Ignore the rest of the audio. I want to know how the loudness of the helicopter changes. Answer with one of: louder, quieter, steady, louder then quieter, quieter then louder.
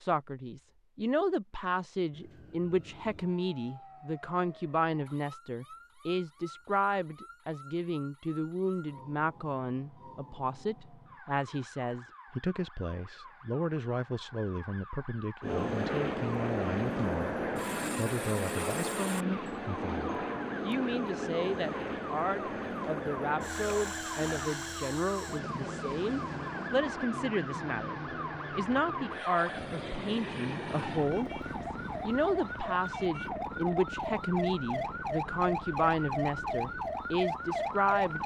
quieter.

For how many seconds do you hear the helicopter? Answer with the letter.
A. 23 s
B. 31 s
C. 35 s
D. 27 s
A.